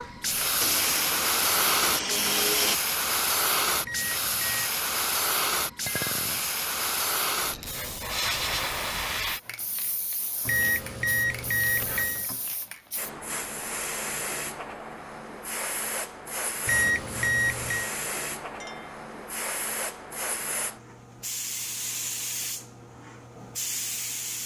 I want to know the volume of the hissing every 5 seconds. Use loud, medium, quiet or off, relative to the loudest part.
loud, loud, medium, medium, medium.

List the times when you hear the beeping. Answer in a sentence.
You can hear the beeping from 3.9 to 4.7 s, from 10.4 to 12.3 s and from 16.6 to 17.9 s.